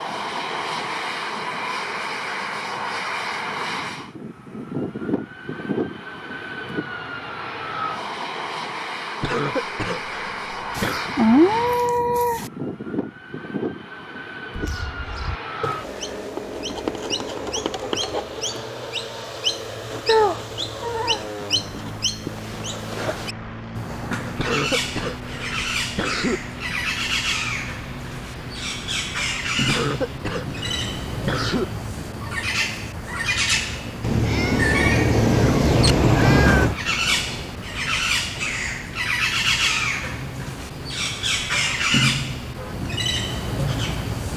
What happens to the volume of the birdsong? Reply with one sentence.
The volume of the birdsong goes up.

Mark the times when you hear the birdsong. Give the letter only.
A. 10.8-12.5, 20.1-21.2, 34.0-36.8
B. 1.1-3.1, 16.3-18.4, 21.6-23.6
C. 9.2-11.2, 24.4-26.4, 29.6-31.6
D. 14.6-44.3
D.